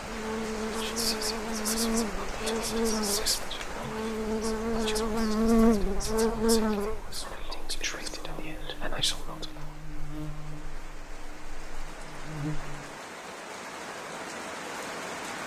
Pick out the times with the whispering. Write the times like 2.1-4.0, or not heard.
0.6-9.8.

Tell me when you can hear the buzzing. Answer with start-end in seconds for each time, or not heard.
0.0-12.9.